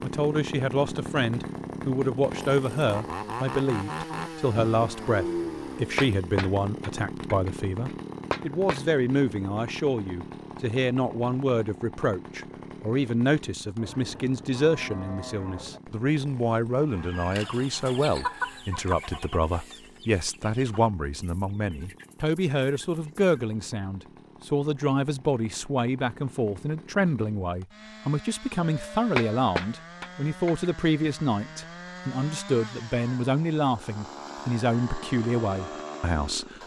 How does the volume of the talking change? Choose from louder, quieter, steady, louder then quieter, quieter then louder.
steady.